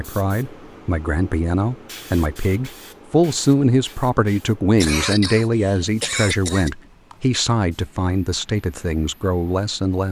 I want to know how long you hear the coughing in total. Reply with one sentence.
You can hear the coughing for 2 seconds altogether.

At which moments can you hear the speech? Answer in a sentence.
The speech can be heard from 0.0 to 10.0 s.